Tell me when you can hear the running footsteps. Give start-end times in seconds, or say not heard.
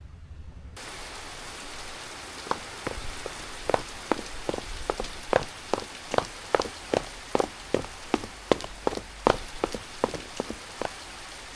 2.5-10.9.